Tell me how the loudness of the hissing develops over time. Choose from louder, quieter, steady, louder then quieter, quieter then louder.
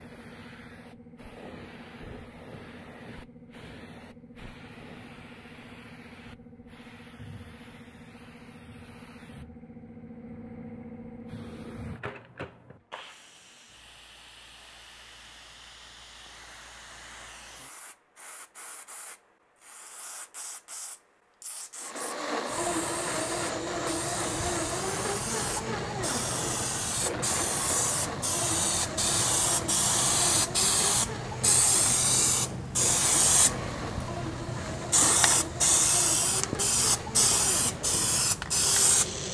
louder.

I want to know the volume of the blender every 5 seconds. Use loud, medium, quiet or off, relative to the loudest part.
off, off, off, off, loud, loud, medium, medium.